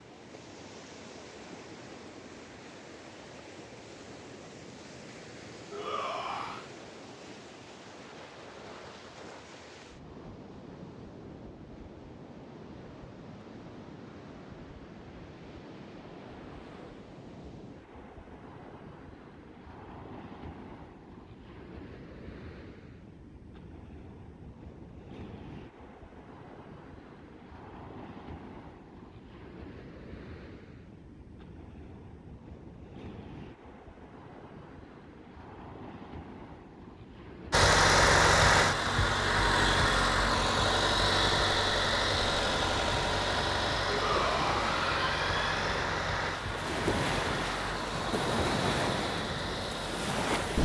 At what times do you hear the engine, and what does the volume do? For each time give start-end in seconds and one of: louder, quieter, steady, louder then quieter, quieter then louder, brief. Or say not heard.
37.5-50.6 quieter.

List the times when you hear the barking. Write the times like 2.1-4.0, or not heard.
not heard.